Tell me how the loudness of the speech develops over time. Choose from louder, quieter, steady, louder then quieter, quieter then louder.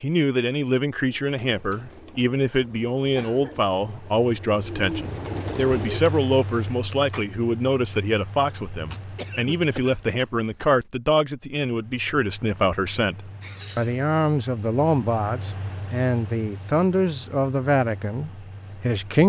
steady.